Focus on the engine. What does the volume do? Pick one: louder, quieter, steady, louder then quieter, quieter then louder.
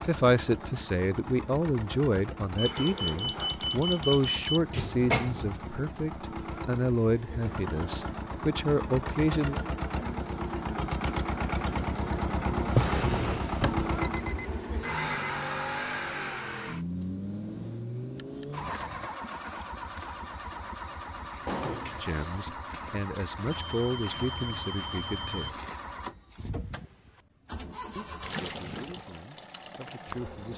louder then quieter.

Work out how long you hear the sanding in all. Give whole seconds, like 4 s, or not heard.
not heard.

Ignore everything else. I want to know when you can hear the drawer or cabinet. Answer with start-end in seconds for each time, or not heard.
4.7-5.5, 12.7-13.9, 21.4-22.6.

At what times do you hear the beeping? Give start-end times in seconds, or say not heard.
2.5-4.6, 13.9-15.4, 23.5-25.5.